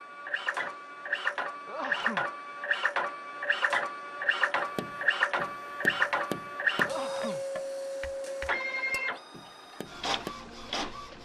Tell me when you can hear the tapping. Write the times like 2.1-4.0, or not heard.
4.8-10.3.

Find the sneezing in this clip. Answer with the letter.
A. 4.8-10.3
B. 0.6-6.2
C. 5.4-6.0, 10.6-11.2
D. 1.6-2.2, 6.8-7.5
D.